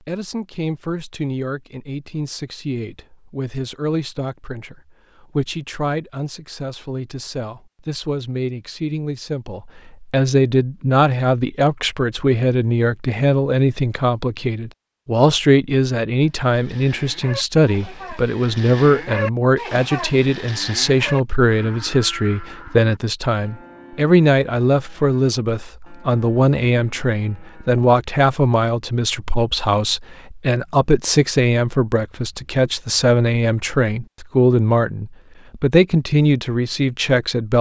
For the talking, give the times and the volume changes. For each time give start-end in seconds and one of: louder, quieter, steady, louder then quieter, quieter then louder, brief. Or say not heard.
0.0-37.5 louder.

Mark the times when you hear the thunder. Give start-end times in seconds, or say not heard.
not heard.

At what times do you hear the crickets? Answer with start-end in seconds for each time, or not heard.
not heard.